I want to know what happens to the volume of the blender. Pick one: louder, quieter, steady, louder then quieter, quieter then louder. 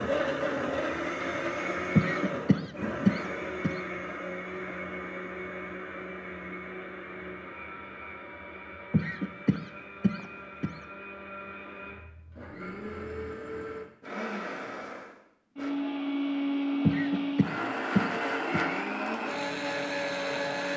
quieter then louder.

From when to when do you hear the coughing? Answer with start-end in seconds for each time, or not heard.
1.9-3.7, 8.9-10.7, 16.9-18.6.